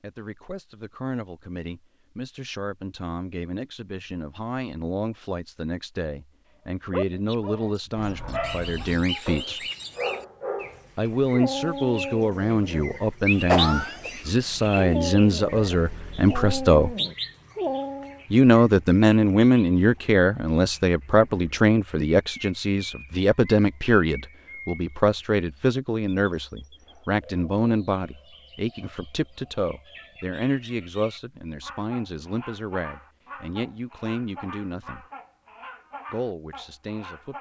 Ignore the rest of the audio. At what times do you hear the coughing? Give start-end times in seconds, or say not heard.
13.4-14.4.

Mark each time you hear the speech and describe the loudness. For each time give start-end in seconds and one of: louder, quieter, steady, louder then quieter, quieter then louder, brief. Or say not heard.
0.0-9.7 louder
10.9-16.9 steady
18.3-35.0 quieter
36.1-37.3 brief.